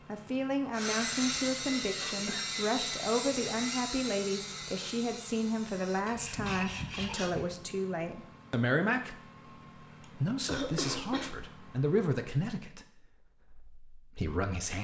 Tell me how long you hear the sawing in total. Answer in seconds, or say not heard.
7 s.